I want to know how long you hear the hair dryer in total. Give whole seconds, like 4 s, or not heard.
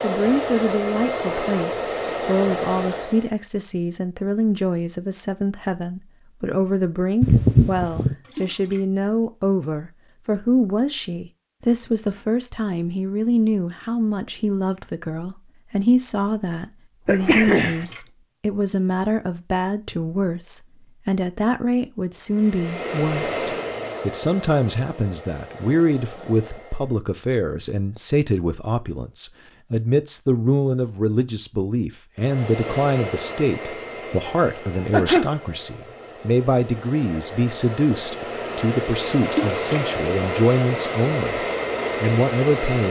19 s.